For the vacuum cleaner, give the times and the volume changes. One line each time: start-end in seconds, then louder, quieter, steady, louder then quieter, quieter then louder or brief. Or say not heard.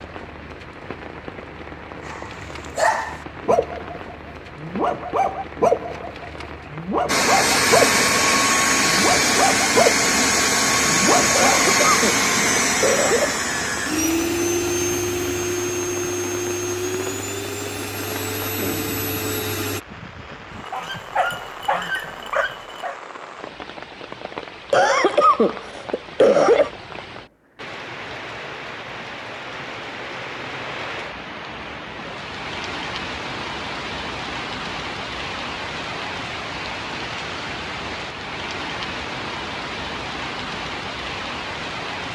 7.0-19.8 quieter.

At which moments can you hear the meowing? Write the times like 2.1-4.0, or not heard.
not heard.